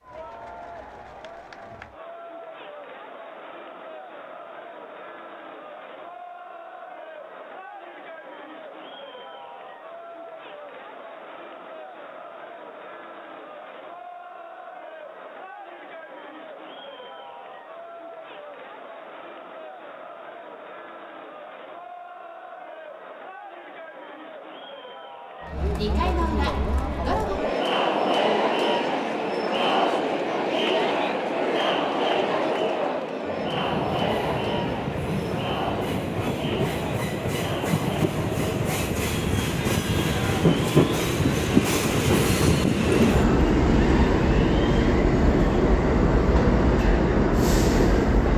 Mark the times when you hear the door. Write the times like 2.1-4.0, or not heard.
not heard.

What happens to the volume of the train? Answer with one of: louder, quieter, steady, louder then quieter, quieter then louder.
louder.